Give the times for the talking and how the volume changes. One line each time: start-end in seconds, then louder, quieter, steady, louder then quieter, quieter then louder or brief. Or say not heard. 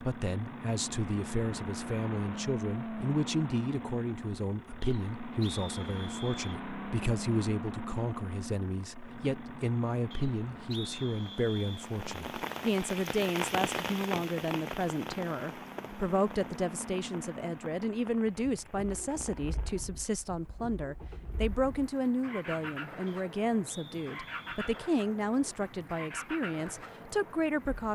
0.0-27.8 steady.